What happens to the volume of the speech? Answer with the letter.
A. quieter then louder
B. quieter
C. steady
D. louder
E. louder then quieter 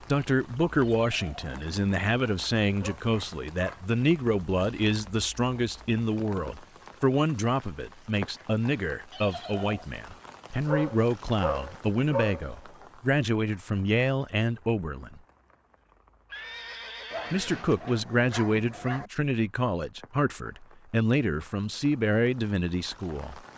C.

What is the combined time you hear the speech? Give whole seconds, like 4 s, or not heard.
21 s.